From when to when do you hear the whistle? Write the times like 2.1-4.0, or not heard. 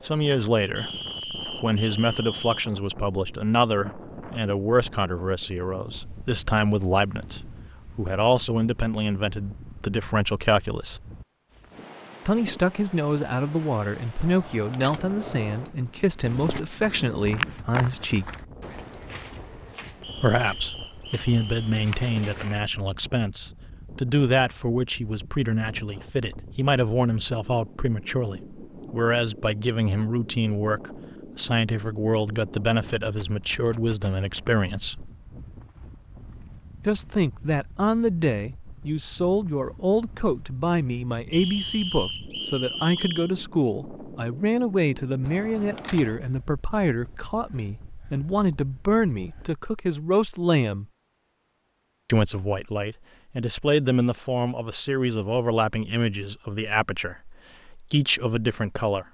0.8-2.7, 20.0-21.8, 41.3-43.3.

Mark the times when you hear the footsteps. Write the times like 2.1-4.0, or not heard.
16.2-22.6.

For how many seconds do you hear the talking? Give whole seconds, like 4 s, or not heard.
53 s.